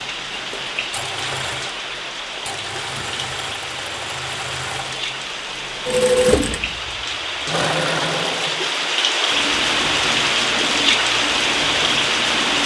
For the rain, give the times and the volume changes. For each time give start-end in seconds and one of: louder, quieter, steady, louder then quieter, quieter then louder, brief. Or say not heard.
0.0-12.6 louder.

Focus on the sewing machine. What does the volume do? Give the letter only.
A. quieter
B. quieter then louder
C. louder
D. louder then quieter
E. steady
D.